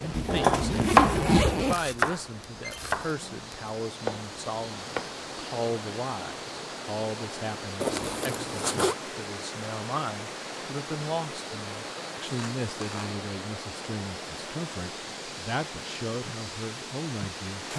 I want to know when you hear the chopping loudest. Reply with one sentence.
The loudest moment of the chopping is at 1 second.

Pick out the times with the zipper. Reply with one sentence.
The zipper can be heard from 0.1 to 1.8 s, from 7.8 to 8.9 s and from 12.2 to 13.2 s.